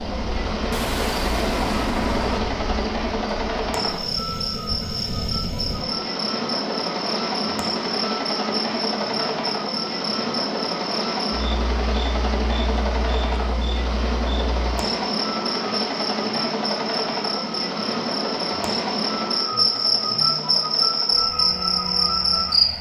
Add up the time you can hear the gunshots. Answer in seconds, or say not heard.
2 s.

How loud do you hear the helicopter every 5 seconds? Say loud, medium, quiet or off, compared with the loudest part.
loud, loud, loud, loud, medium.